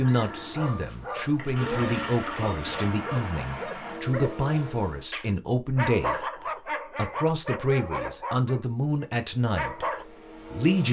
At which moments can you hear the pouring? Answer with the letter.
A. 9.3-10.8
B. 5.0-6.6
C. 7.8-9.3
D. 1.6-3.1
D.